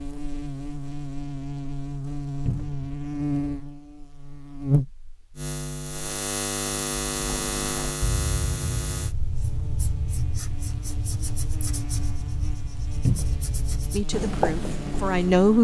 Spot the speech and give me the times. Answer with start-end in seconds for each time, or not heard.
13.8-15.5.